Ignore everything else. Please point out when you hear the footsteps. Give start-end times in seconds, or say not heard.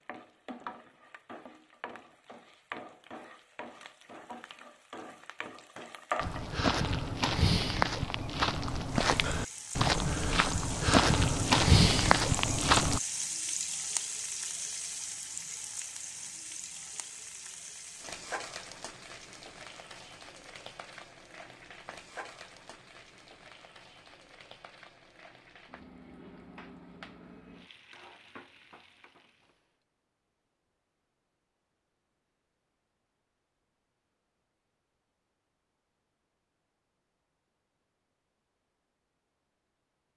6.2-13.0.